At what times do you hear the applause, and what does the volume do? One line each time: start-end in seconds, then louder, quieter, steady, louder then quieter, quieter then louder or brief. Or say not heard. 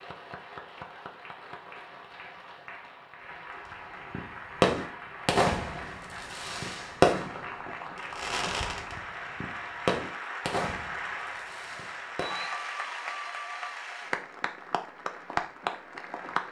0.0-16.4 louder.